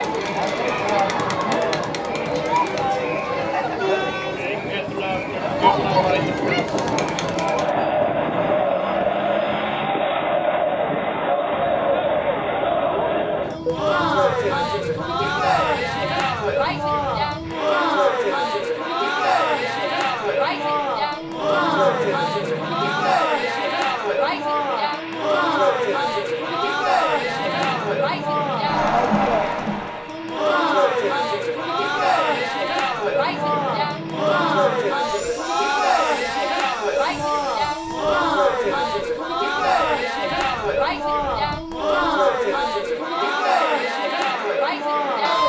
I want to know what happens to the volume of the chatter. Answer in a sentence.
The volume of the chatter stays about the same.